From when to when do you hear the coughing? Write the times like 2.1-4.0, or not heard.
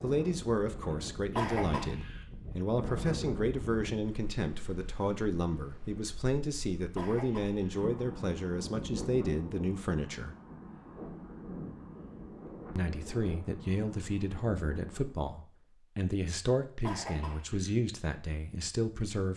1.4-2.2, 7.0-7.8, 16.8-17.7.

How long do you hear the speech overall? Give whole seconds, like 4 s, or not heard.
17 s.